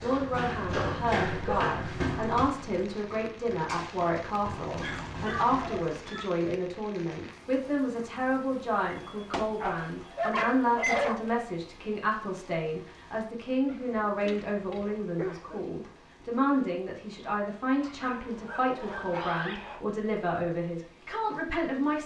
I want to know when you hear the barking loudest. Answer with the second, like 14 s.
11 s.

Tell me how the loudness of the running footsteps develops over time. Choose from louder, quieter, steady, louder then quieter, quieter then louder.
quieter then louder.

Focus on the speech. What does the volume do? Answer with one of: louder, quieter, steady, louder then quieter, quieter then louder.
steady.